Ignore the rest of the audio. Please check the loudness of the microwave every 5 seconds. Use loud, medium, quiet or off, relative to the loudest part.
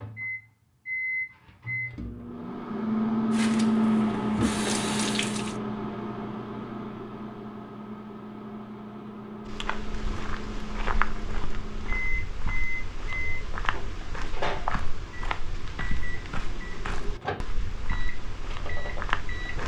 loud, medium, medium, quiet.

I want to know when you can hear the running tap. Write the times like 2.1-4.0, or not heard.
3.3-5.5.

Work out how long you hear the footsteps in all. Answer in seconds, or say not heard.
10 s.